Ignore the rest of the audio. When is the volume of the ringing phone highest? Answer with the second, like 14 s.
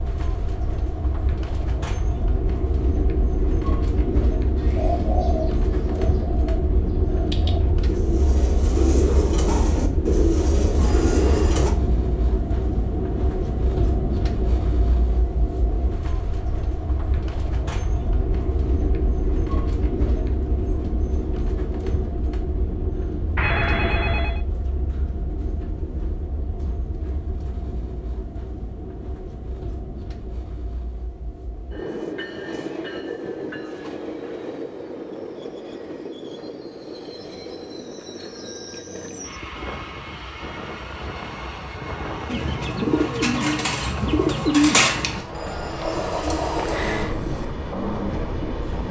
24 s.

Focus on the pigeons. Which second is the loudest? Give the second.
45 s.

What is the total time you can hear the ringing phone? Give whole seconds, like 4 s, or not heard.
4 s.